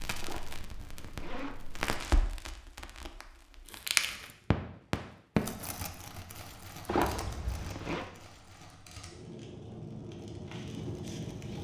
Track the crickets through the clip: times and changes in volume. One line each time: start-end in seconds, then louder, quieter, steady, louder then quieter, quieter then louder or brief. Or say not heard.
not heard.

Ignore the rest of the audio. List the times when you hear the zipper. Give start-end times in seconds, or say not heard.
0.2-1.6, 6.8-8.1.